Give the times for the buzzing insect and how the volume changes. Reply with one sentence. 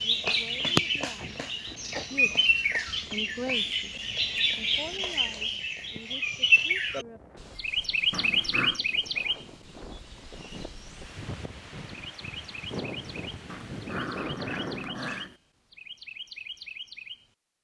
The buzzing insect can't be heard in this clip.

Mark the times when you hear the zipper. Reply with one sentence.
You can't hear the zipper here.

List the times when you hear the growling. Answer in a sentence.
The growling can be heard from 1.1 to 2.0 s, from 8.1 to 8.8 s and from 13.4 to 15.3 s.